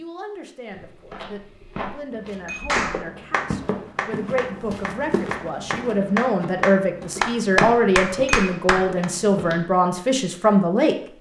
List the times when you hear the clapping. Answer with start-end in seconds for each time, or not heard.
2.6-9.1.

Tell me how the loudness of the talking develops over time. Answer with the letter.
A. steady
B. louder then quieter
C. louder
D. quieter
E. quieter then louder
C.